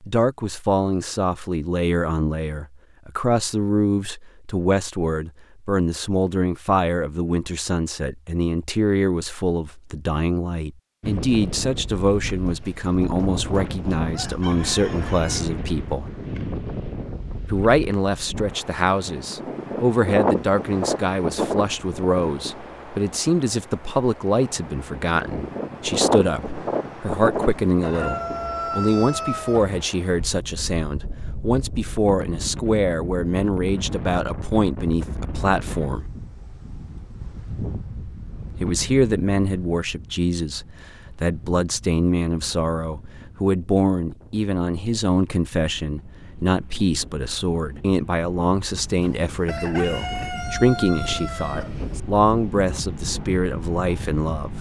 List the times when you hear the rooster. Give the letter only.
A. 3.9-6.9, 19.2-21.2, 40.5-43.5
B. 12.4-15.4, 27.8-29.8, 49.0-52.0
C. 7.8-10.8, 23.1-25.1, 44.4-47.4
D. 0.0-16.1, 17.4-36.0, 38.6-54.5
B.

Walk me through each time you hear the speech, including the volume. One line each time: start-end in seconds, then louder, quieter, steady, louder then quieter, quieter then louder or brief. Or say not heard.
0.0-16.1 steady
17.4-36.0 steady
38.6-54.5 steady.